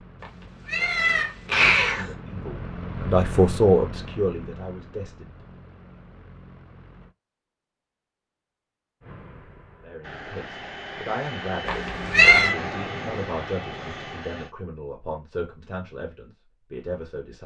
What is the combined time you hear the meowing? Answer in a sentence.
You can hear the meowing for 3 seconds altogether.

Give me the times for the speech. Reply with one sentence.
You can hear the speech from 1.9 to 5.5 s and from 9.8 to 17.4 s.